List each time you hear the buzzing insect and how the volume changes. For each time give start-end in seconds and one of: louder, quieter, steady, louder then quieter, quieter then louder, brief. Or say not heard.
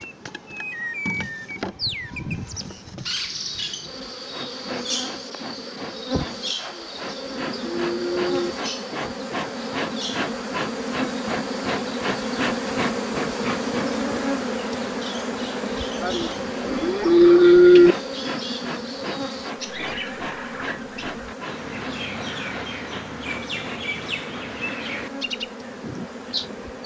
0.0-26.8 louder then quieter.